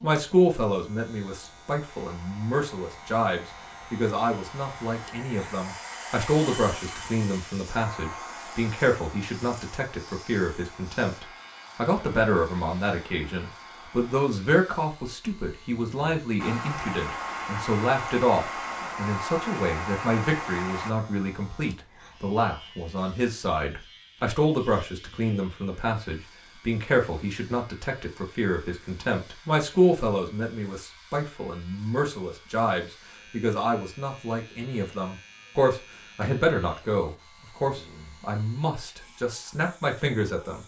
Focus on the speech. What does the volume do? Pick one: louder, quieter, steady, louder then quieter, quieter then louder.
steady.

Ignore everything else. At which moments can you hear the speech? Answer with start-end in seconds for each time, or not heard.
0.0-40.6.